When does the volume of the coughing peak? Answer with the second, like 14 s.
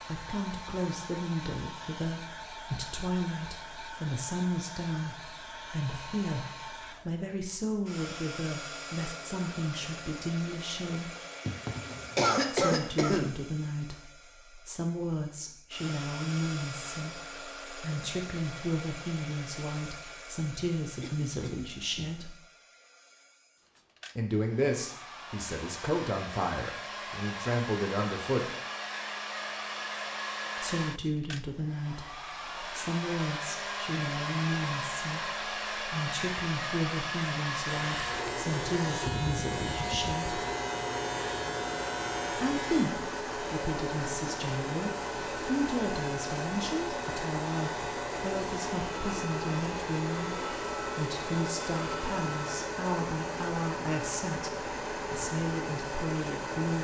12 s.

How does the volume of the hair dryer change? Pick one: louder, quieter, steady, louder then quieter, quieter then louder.
louder.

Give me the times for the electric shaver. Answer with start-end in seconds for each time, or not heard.
37.6-52.6.